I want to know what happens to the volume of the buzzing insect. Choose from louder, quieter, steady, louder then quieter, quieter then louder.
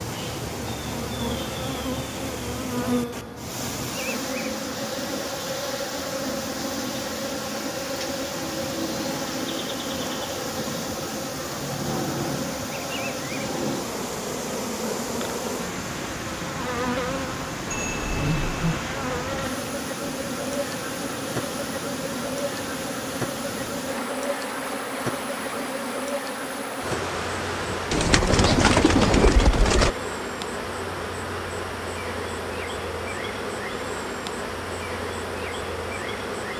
steady.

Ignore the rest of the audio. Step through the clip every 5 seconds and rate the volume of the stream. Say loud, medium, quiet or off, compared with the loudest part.
loud, loud, loud, loud, loud, loud, off, off.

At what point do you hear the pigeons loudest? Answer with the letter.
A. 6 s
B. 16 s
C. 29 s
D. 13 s
C.